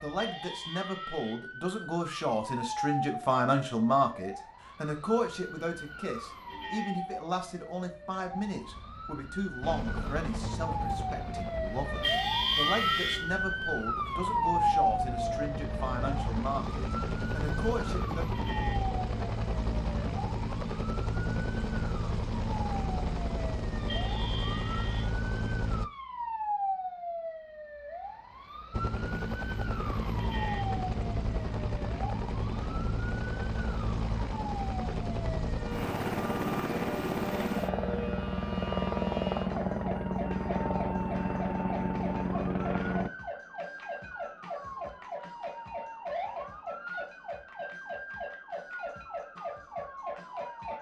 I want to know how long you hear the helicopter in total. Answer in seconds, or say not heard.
31 s.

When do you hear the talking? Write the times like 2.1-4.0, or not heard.
0.0-18.2.